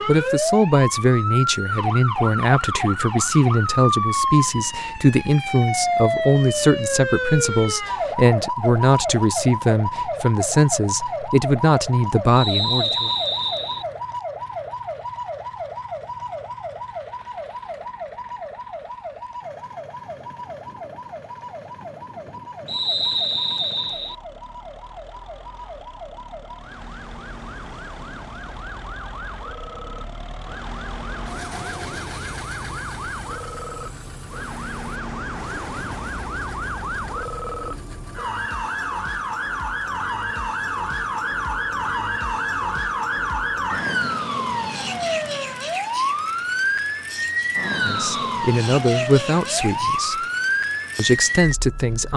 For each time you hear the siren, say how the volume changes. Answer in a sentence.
You can hear the siren from 0.0 to 52.1 s, getting quieter then louder.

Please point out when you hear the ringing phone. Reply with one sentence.
The ringing phone can't be heard in this clip.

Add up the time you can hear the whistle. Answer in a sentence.
You can hear the whistle for 4 seconds altogether.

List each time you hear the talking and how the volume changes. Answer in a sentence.
You can hear the talking from 0.1 to 13.1 s, at a steady volume; briefly from 47.6 to 50.2 s; and briefly from 51.0 to 52.1 s.